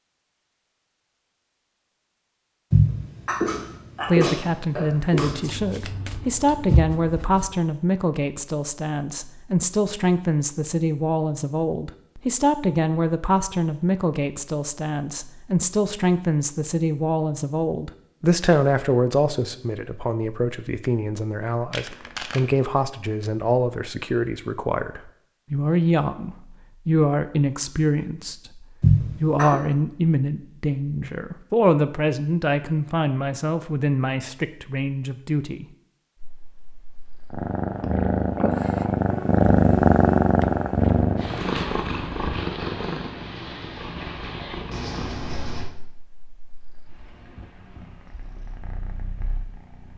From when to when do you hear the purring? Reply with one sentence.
You can hear the purring from 36.2 to 49.9 s.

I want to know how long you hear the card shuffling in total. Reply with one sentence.
The card shuffling can be heard for 4 seconds in total.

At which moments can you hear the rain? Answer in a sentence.
You can't hear the rain here.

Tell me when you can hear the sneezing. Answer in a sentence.
You can hear the sneezing from 2.7 to 5.3 s and from 28.8 to 29.6 s.